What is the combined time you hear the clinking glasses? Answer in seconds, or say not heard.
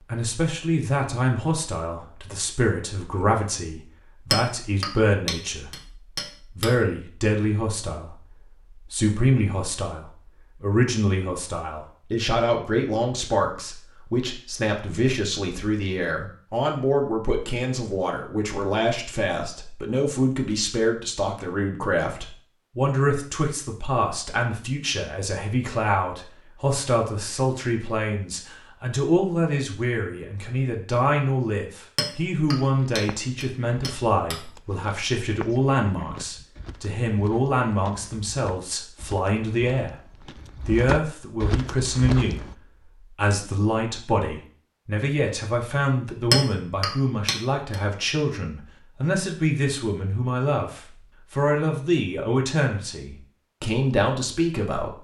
6 s.